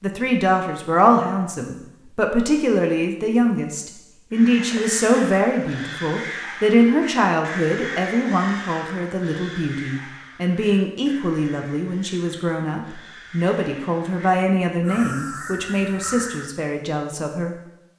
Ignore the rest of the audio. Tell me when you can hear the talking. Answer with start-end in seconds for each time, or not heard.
0.0-17.6.